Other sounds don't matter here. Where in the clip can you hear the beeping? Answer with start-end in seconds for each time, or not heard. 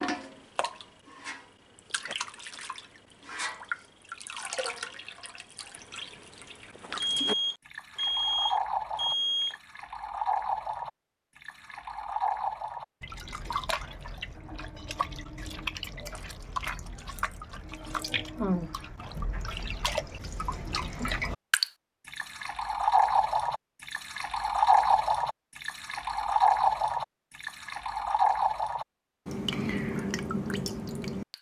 7.0-9.6.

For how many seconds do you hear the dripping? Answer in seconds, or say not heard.
31 s.